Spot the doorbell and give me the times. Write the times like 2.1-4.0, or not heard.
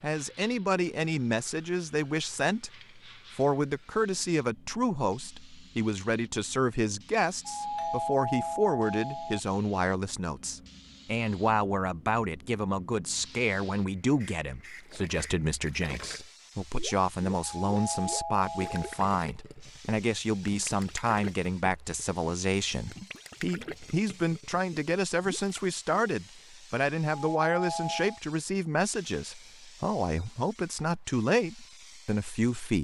7.5-9.4, 17.6-19.0, 27.3-28.2.